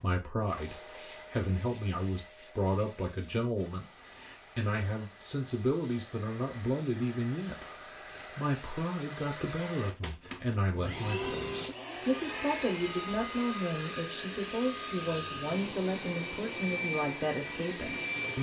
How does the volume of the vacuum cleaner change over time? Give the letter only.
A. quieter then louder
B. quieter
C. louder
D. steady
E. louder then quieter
C.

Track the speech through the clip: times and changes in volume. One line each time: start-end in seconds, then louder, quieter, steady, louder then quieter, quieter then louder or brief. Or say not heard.
0.0-18.3 steady.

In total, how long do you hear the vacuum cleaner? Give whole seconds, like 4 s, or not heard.
18 s.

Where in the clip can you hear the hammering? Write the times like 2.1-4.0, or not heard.
not heard.